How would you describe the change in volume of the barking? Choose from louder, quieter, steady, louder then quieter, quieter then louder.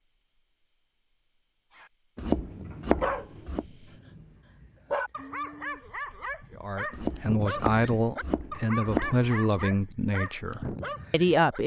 steady.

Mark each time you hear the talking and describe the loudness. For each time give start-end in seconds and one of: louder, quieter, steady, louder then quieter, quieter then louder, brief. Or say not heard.
6.5-11.6 quieter.